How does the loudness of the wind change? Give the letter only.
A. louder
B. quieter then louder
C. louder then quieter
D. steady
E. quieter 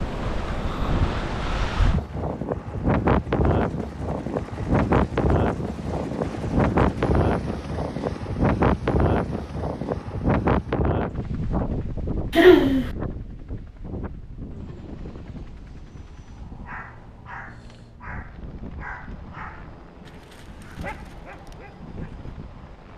E.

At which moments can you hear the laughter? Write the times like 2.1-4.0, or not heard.
12.3-12.9.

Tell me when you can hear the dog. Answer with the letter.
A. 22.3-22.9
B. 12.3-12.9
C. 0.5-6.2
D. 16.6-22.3
D.